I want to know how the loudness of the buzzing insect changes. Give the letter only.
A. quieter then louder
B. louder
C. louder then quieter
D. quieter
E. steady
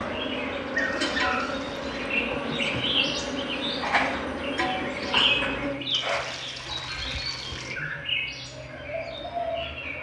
D.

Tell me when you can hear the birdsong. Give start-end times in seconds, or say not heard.
0.0-9.9.